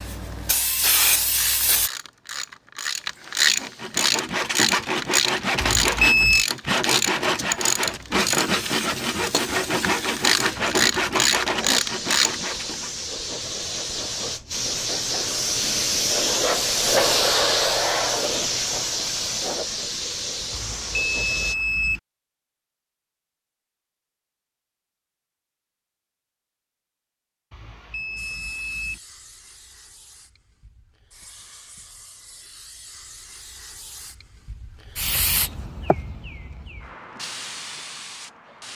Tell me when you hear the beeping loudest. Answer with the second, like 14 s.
6 s.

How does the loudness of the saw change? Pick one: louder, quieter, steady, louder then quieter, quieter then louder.
steady.